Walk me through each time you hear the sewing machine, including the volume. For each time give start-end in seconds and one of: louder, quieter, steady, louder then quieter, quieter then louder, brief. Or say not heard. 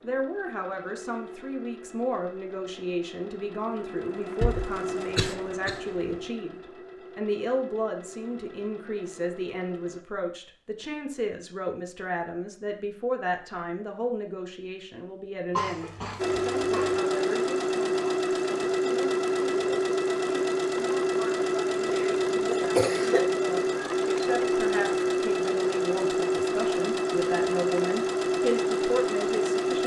0.0-10.1 louder then quieter
16.1-29.8 steady.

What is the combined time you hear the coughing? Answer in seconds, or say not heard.
5 s.